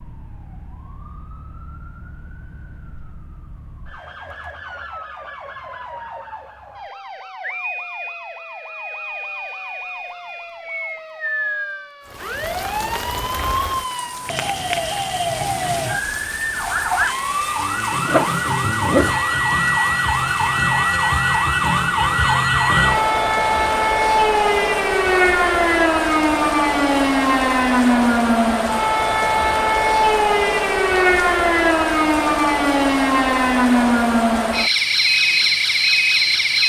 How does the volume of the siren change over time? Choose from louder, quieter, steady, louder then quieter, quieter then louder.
louder.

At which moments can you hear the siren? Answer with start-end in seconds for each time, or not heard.
0.0-36.6.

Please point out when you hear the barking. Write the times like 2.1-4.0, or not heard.
18.1-19.4.